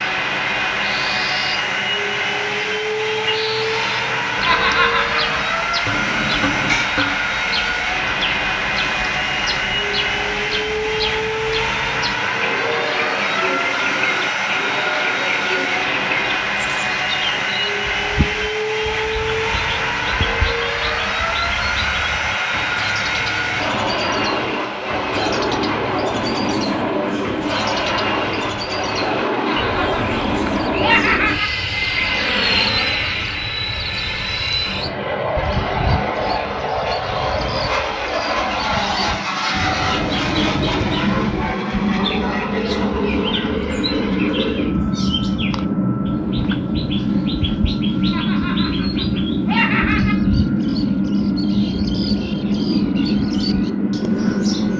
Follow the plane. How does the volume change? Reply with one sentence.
The loudness of the plane stays about the same.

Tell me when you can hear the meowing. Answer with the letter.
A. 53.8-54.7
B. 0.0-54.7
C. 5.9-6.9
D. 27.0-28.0
C.